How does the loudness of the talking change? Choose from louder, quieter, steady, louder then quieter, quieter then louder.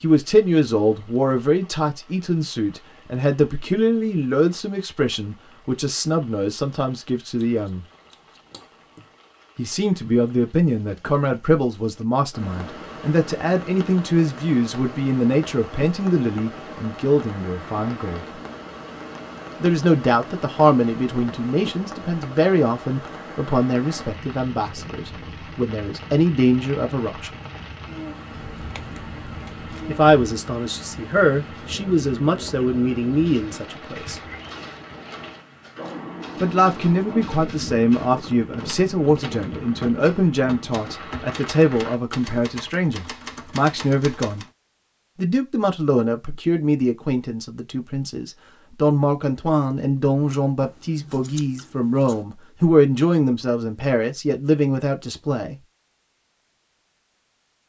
steady.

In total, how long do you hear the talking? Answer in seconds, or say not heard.
47 s.